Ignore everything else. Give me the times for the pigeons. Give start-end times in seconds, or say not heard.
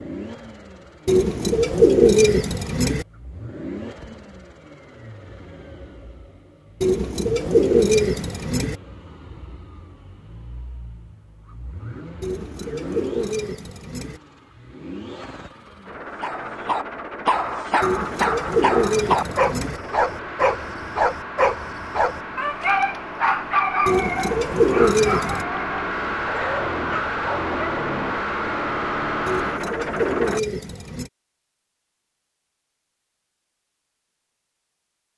1.1-3.0, 6.8-8.8, 12.2-14.2, 17.8-19.8, 23.9-25.4, 29.2-31.1.